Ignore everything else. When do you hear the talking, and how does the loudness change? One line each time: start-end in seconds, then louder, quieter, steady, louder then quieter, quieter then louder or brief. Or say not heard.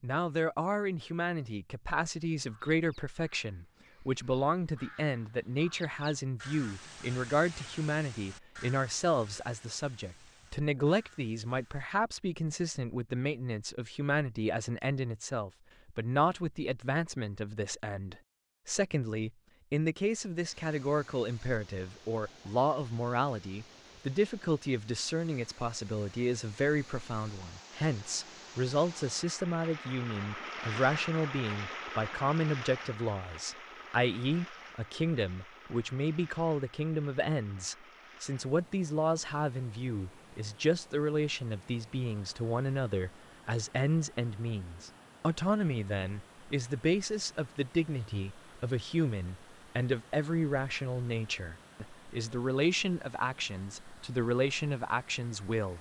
0.0-55.7 steady.